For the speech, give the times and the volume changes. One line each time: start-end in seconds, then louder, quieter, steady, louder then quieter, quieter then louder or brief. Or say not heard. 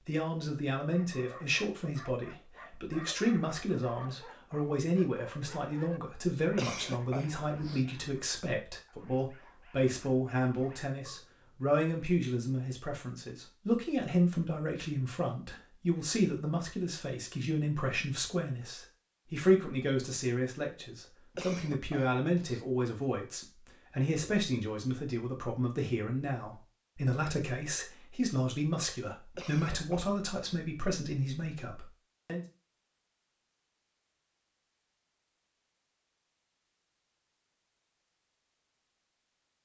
0.1-32.5 steady.